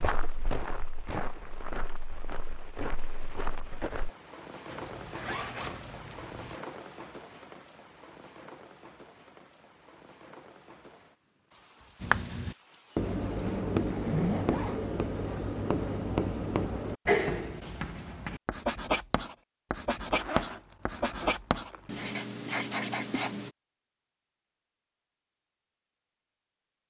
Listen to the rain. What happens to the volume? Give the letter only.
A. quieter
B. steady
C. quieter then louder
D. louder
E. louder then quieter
E.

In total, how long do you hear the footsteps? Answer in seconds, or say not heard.
4 s.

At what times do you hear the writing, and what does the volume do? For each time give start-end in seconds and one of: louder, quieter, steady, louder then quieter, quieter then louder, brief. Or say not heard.
12.0-23.5 steady.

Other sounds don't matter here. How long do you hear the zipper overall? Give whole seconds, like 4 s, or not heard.
5 s.